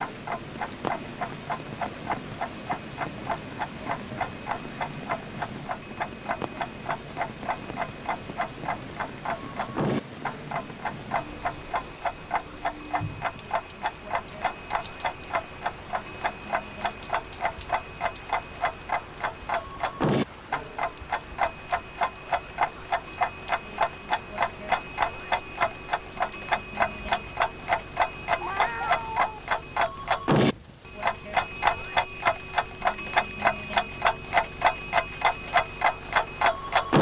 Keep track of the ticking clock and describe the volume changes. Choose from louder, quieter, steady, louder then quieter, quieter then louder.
louder.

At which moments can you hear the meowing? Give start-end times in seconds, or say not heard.
28.4-29.4.